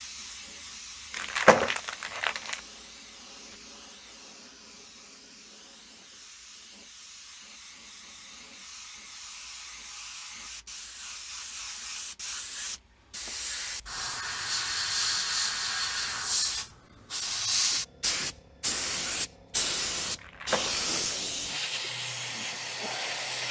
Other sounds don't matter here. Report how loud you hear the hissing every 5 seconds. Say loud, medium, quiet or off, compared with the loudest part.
quiet, quiet, medium, loud, loud.